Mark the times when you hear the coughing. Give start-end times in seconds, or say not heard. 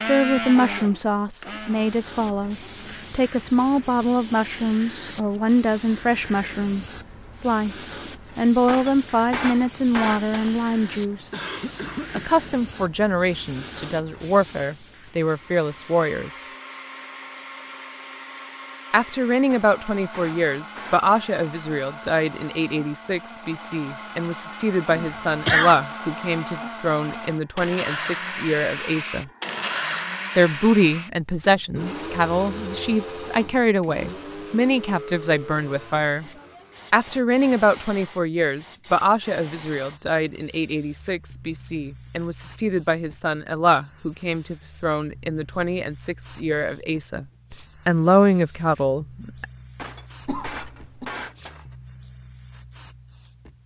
11.3-12.3, 24.9-25.8, 50.2-51.1.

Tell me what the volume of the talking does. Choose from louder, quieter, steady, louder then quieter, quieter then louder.
steady.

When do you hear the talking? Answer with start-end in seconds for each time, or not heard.
0.0-11.3, 12.2-16.4, 18.9-29.2, 30.4-36.3, 36.9-49.5.